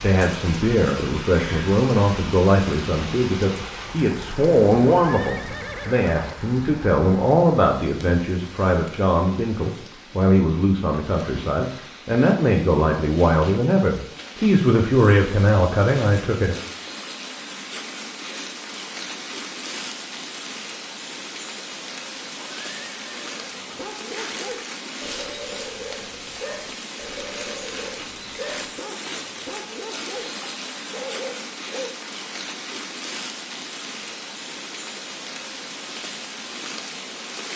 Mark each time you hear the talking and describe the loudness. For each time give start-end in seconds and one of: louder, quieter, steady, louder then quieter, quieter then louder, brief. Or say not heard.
0.0-16.6 steady.